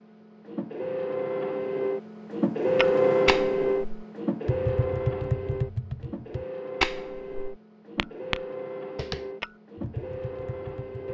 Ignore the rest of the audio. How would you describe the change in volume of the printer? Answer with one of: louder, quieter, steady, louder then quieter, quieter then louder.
louder then quieter.